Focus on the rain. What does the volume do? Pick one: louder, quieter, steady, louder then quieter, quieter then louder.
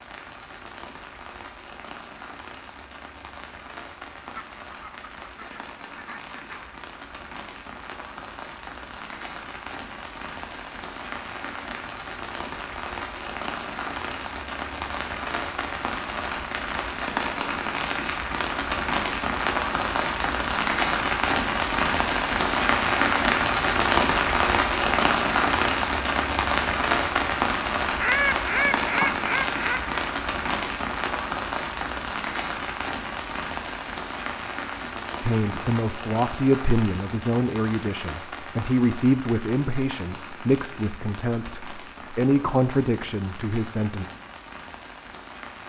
louder then quieter.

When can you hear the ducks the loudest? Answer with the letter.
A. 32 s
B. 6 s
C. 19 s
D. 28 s
D.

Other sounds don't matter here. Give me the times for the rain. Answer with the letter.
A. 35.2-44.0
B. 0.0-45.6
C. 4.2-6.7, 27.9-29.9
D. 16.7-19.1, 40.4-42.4
B.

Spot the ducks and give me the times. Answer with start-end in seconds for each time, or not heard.
4.2-6.7, 27.9-29.9.